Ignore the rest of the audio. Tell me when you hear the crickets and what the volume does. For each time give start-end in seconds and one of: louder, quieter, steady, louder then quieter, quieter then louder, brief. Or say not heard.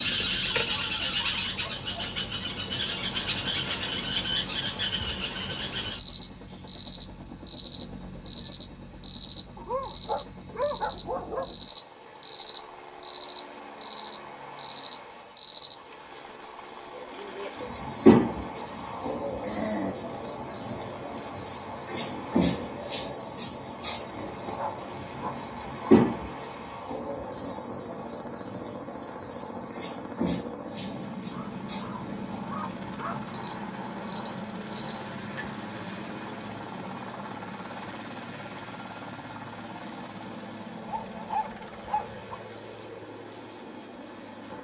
0.0-35.5 quieter.